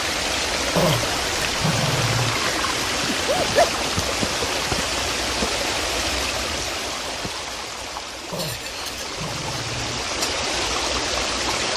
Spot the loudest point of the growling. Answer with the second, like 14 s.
1 s.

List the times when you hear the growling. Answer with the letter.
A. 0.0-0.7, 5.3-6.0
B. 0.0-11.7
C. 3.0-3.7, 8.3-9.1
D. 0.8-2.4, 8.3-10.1
D.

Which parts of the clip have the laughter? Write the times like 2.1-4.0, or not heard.
3.0-3.7, 8.3-9.1.